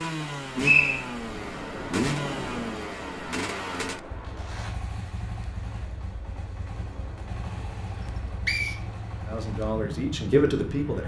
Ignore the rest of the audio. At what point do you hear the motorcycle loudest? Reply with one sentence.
The volume of the motorcycle peaks at 2 seconds.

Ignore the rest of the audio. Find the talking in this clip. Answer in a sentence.
You can hear the talking from 9.2 to 11.0 s.